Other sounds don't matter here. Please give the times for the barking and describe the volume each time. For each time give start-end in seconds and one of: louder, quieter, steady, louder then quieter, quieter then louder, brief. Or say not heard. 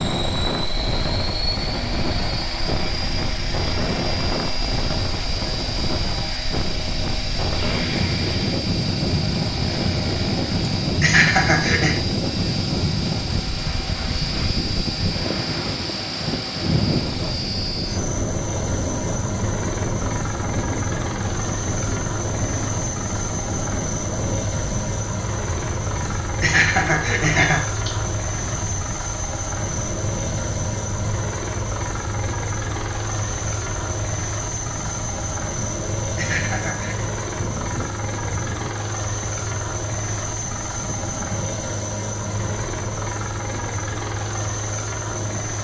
not heard.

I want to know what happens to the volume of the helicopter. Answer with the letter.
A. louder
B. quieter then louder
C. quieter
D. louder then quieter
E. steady
E.